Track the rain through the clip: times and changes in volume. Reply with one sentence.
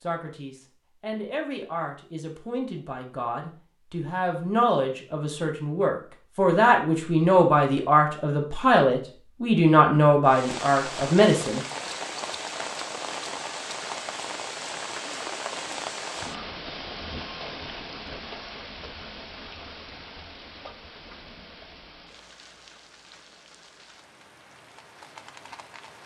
The rain can be heard from 10.2 to 26.0 s, getting quieter.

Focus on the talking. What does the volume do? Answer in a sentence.
The volume of the talking goes up.